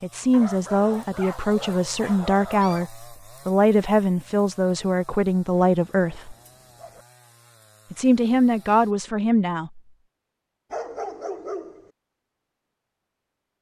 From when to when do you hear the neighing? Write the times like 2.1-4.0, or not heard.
not heard.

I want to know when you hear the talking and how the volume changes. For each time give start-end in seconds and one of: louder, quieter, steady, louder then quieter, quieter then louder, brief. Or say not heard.
0.0-6.3 steady
7.9-9.8 brief.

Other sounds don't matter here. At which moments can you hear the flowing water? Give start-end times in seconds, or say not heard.
not heard.